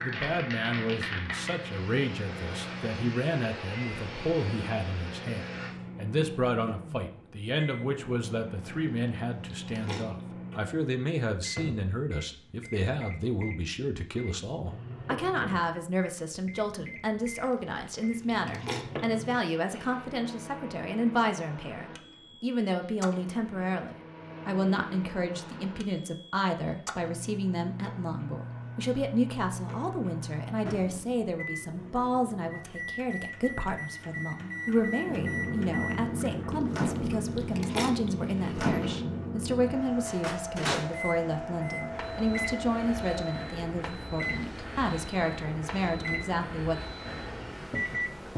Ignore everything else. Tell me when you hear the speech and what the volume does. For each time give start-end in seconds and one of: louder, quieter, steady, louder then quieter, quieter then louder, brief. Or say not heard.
0.0-46.9 steady.